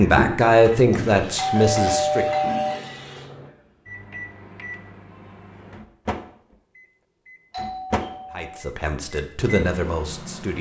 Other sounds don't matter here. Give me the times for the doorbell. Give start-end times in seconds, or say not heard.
0.9-2.8, 7.5-8.6.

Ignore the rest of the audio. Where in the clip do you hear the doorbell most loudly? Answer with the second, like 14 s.
2 s.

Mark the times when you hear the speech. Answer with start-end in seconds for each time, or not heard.
0.0-2.2, 8.3-10.5.